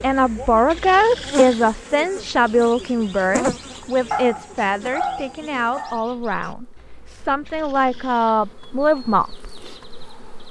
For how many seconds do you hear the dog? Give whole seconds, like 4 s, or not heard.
2 s.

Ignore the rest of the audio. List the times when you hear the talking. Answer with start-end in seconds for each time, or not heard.
0.0-9.4.